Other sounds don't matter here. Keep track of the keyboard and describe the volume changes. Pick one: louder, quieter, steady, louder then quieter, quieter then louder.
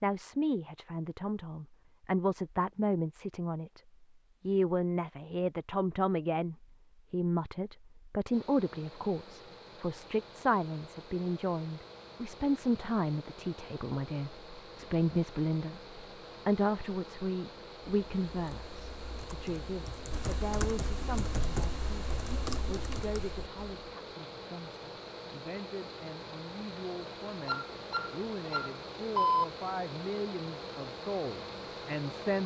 louder.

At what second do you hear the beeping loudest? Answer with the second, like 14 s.
29 s.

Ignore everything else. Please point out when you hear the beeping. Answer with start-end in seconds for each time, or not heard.
27.4-29.4.